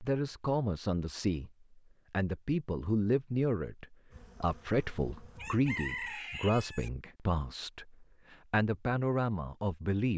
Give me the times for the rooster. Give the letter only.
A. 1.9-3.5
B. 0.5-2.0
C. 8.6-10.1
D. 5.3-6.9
D.